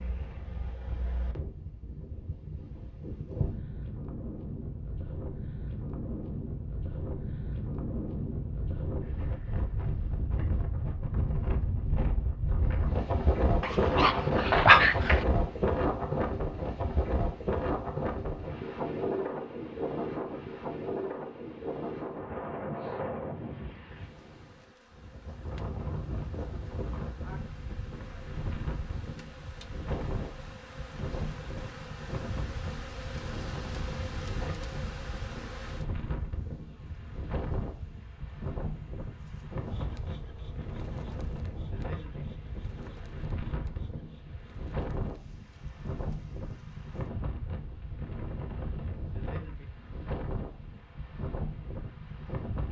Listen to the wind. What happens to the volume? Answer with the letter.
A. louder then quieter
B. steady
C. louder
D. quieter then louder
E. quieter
A.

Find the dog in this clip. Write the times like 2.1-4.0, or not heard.
13.6-15.2.